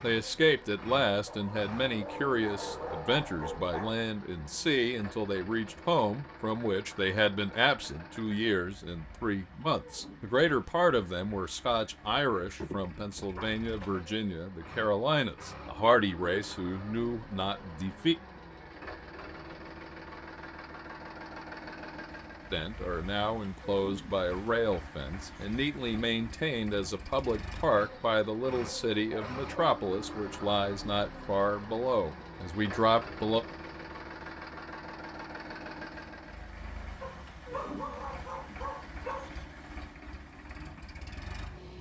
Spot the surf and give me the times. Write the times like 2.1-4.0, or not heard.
not heard.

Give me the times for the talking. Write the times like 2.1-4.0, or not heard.
0.0-18.1, 22.5-33.5.